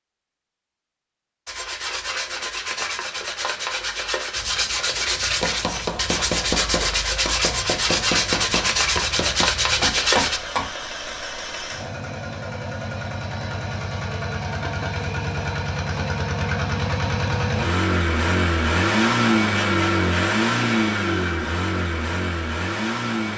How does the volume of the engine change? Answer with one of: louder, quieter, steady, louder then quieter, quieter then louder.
louder.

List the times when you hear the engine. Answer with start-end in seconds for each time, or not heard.
4.3-23.3.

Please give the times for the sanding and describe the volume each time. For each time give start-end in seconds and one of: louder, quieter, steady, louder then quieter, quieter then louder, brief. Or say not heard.
1.4-10.4 louder.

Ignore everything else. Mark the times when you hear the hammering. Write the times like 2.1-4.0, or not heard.
5.3-10.7.